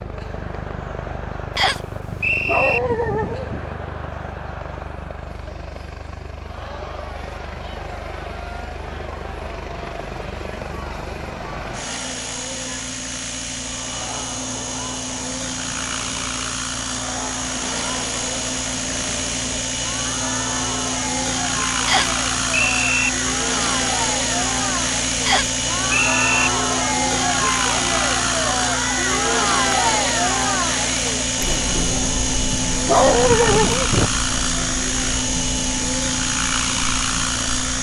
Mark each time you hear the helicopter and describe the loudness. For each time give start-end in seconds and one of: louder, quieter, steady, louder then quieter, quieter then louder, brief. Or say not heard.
0.0-37.7 louder.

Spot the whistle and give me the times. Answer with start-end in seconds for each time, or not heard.
1.6-2.8, 21.9-23.1, 25.2-26.5.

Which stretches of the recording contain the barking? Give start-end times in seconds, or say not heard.
2.3-3.6, 32.8-34.1.